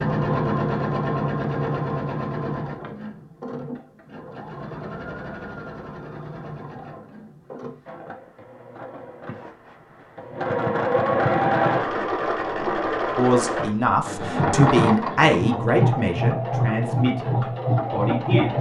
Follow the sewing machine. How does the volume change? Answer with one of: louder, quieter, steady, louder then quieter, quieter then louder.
quieter then louder.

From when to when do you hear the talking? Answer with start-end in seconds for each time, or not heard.
13.2-18.5.